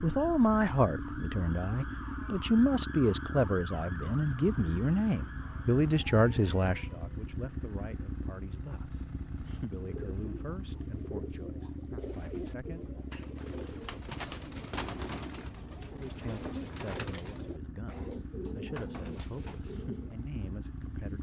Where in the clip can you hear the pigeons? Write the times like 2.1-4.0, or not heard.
9.8-20.2.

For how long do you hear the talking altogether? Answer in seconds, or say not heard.
18 s.